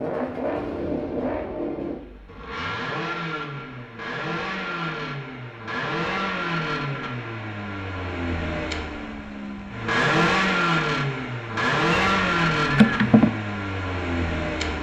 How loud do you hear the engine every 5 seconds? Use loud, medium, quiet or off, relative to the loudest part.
medium, medium, loud.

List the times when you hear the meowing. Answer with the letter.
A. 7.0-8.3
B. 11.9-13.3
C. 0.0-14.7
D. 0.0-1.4
B.